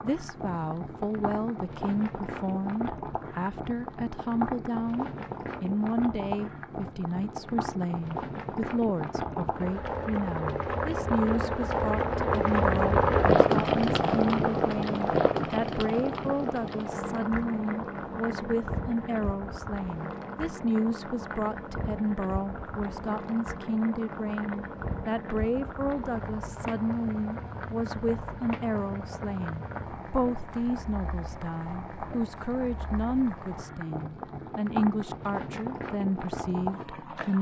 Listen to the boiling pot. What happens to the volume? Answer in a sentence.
The loudness of the boiling pot goes up, then down.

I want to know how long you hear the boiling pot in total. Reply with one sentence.
The boiling pot can be heard for 37 seconds in total.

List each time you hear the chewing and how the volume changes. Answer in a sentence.
You can't hear the chewing here.